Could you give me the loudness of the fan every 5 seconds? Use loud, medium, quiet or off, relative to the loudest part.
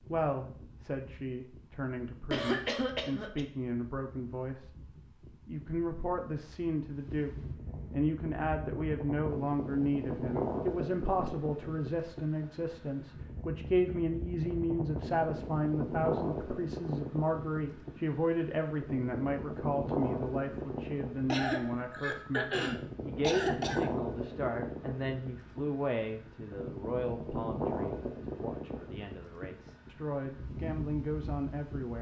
quiet, medium, loud, loud, loud, loud, medium.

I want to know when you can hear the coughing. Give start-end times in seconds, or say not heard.
2.3-3.5, 21.2-23.9.